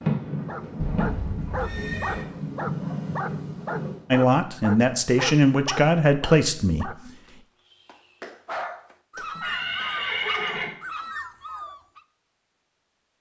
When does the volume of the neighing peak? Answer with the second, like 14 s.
10 s.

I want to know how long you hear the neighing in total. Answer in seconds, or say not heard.
3 s.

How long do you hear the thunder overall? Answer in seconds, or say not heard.
4 s.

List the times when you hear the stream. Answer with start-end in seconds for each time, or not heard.
not heard.